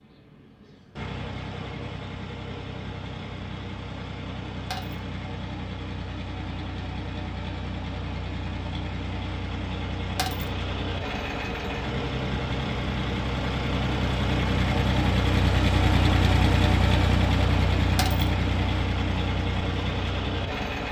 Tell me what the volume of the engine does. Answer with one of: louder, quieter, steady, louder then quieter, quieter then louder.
louder.